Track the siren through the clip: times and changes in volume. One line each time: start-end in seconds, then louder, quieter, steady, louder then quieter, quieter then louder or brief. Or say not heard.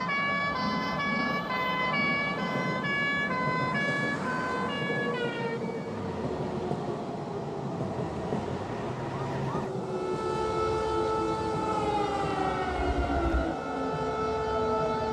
0.0-15.0 quieter then louder.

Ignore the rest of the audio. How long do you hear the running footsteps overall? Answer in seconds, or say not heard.
not heard.